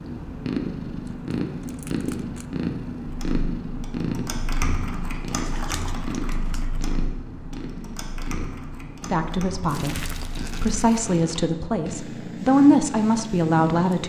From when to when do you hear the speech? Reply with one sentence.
You can hear the speech from 9.1 to 14.0 s.